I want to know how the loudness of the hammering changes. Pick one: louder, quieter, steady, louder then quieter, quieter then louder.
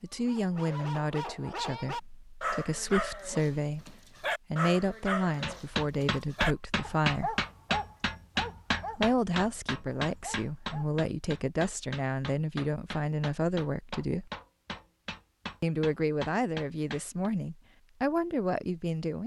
quieter.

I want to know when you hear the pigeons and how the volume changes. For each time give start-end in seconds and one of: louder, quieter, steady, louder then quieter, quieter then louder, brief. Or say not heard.
not heard.